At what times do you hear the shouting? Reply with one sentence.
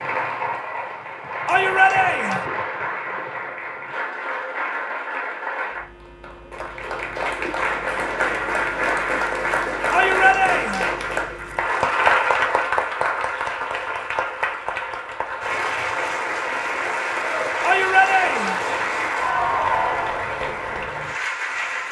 The shouting can be heard from 1.4 to 2.5 s, from 9.9 to 10.9 s and from 17.6 to 18.6 s.